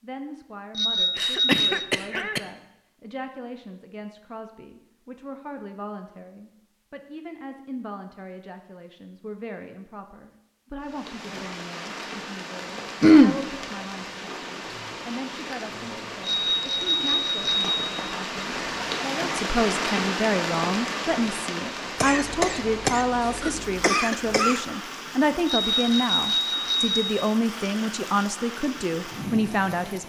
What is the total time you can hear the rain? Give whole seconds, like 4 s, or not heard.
19 s.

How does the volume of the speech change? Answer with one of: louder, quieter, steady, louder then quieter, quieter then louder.
louder.